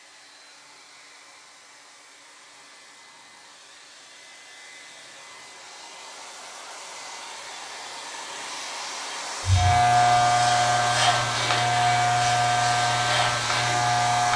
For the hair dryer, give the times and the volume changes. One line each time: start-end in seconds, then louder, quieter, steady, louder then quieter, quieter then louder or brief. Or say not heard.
0.0-14.3 louder.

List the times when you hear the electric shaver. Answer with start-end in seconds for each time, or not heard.
9.4-14.3.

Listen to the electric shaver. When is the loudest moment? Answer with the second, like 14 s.
10 s.